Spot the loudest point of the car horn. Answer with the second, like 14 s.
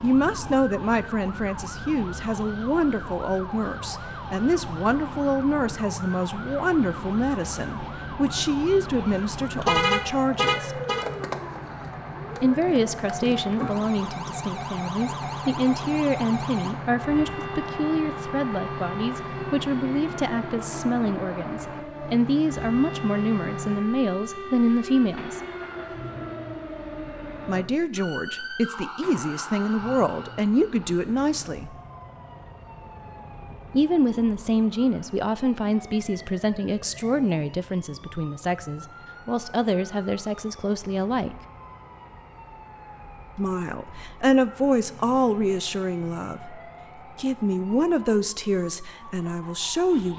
10 s.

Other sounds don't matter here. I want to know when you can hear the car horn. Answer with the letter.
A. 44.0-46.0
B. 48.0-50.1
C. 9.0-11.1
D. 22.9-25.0
C.